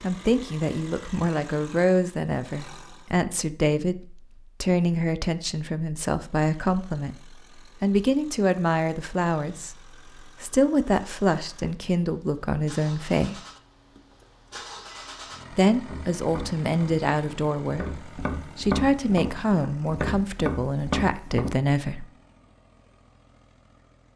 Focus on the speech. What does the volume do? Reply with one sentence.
The loudness of the speech stays about the same.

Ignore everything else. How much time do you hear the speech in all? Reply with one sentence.
The speech can be heard for 20 seconds in total.